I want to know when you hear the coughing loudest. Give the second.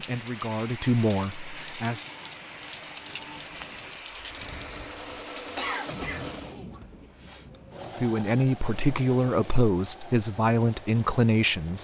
6 s.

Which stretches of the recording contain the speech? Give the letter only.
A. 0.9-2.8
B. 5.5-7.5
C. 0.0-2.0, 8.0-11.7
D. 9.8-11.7
C.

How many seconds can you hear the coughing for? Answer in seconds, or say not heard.
2 s.